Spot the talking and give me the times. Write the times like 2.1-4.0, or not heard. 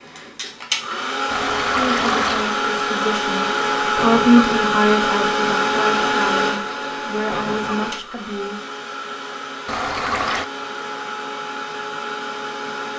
1.8-8.6.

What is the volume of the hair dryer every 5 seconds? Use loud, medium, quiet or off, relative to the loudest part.
loud, loud, medium.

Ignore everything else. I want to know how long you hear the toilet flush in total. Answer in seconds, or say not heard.
2 s.